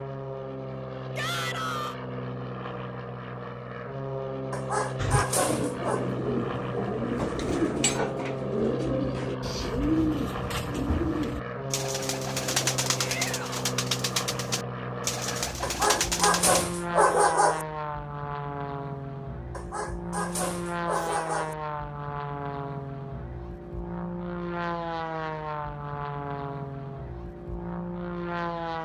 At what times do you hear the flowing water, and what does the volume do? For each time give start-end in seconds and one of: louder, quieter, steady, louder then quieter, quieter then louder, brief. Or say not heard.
not heard.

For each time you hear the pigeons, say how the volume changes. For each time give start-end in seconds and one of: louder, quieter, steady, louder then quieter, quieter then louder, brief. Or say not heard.
5.0-16.6 steady.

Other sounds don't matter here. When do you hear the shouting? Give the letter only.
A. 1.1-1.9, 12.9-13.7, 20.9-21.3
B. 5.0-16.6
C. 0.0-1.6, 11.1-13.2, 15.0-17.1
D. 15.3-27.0
A.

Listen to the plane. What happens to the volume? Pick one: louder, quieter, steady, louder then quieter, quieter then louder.
steady.